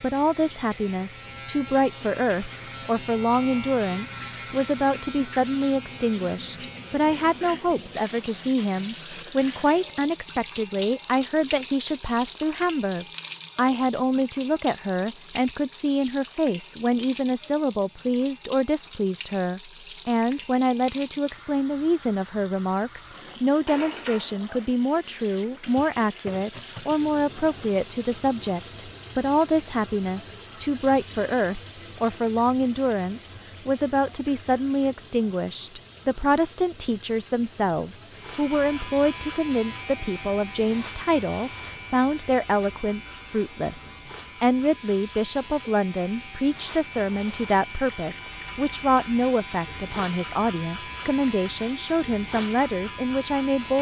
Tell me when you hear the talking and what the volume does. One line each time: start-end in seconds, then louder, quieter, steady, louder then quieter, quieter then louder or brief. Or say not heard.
0.0-53.7 steady.